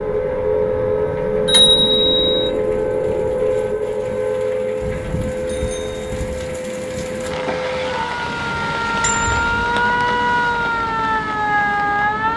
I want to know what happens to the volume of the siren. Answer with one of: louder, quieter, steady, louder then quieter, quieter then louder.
quieter then louder.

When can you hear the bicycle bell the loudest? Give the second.
2 s.